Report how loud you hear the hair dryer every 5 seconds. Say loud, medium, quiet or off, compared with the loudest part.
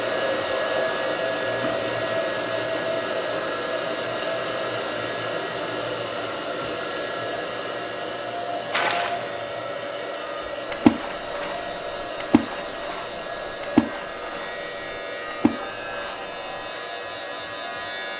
loud, loud, medium, medium.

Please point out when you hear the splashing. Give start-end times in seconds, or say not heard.
8.7-9.9, 10.7-16.6.